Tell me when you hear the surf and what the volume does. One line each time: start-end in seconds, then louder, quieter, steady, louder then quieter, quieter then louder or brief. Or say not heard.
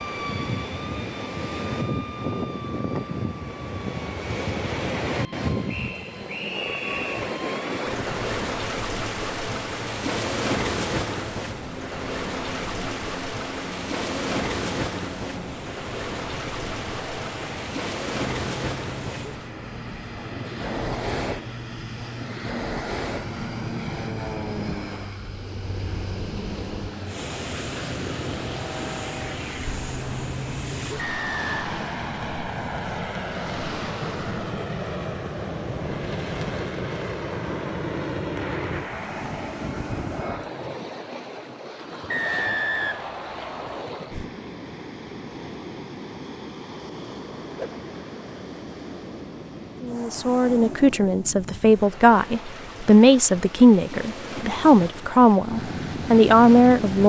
0.0-57.0 quieter.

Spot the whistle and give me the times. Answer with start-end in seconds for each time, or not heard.
5.7-7.2, 30.9-31.6, 42.0-43.9.